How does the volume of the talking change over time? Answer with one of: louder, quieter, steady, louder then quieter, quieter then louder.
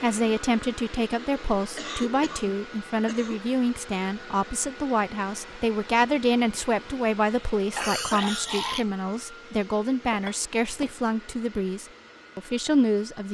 steady.